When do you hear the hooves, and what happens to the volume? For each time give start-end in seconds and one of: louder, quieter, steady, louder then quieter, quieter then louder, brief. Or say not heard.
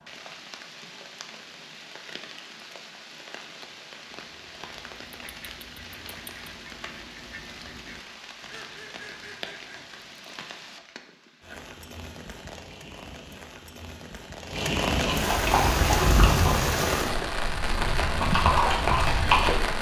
15.1-19.7 quieter then louder.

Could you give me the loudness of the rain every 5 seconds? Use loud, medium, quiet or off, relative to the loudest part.
quiet, quiet, medium, loud.